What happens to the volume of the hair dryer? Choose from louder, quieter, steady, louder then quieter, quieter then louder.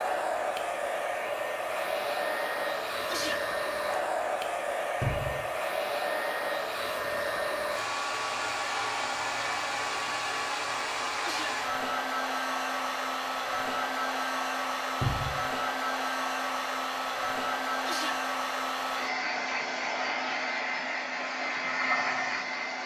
steady.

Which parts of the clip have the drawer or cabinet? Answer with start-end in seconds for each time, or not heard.
5.0-5.4, 15.0-15.4.